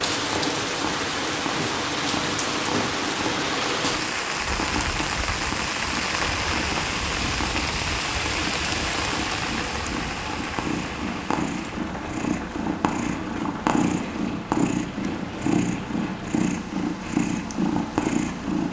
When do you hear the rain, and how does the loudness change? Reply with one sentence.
You can hear the rain from 0.0 to 18.6 s, getting quieter.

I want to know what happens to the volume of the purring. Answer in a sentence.
The volume of the purring goes up.